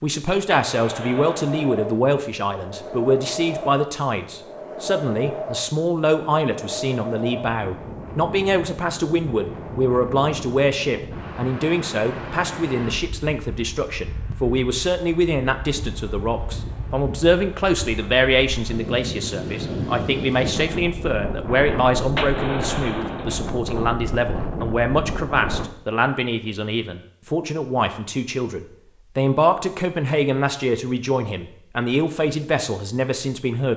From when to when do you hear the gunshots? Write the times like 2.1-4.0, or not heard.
0.5-1.7, 22.1-23.5.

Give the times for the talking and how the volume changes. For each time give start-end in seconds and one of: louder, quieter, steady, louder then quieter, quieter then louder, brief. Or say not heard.
0.0-33.7 steady.